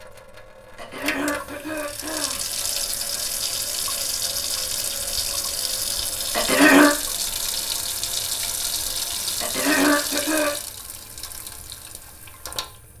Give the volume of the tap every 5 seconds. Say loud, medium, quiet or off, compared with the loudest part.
loud, loud, medium.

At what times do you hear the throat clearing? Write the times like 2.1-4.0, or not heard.
0.8-2.4, 6.3-7.0, 9.4-10.5.